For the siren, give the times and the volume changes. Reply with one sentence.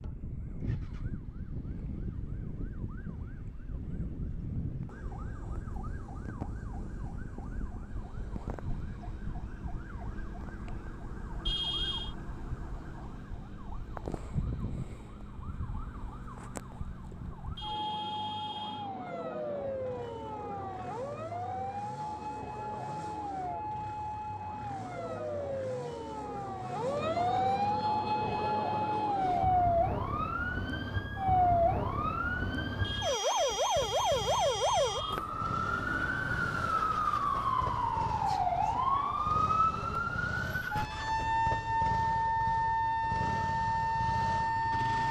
You can hear the siren from 0.0 to 45.0 s, getting louder.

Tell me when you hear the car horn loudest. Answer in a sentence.
The volume of the car horn peaks at 12 seconds.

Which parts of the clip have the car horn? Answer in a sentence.
The car horn can be heard from 11.4 to 12.2 s, from 17.6 to 18.9 s and from 32.8 to 35.2 s.